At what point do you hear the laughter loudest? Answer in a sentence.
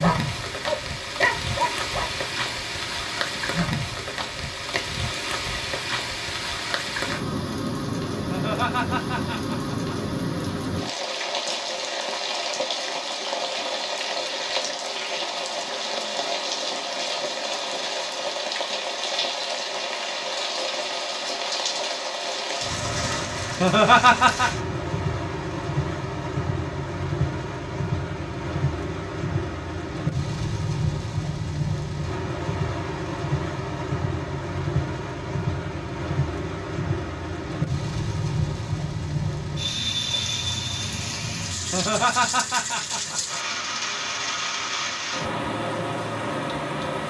The volume of the laughter peaks at 24 seconds.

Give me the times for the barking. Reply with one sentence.
You can hear the barking from 0.0 to 2.1 s.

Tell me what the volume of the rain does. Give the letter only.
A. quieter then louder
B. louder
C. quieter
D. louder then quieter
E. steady
E.